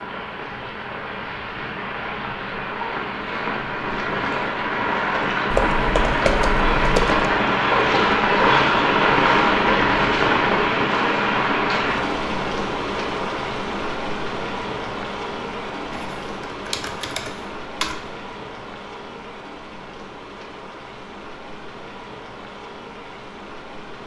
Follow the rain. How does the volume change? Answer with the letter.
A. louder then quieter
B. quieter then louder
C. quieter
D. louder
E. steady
A.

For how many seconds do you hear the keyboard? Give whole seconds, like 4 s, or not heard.
4 s.